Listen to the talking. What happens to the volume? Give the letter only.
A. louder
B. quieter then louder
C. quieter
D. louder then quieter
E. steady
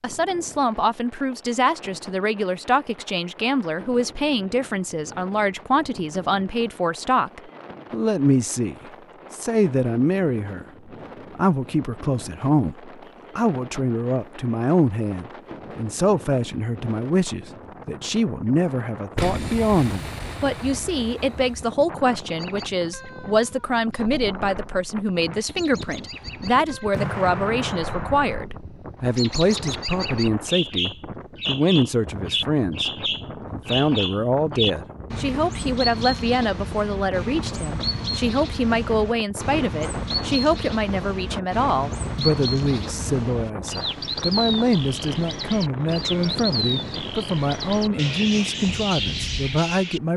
E.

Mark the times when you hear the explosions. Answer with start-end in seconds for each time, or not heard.
19.1-21.6, 26.9-28.4.